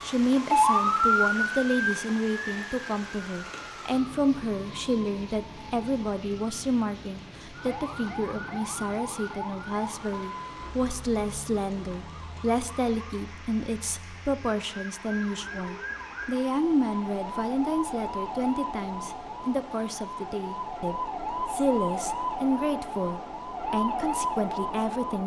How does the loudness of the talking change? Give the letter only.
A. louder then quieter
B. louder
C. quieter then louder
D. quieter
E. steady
E.